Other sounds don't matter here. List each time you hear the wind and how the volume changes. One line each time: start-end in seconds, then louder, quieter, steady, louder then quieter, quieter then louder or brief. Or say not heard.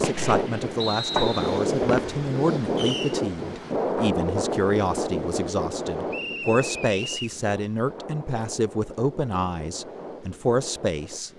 0.0-11.3 quieter.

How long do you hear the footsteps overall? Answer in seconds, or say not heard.
not heard.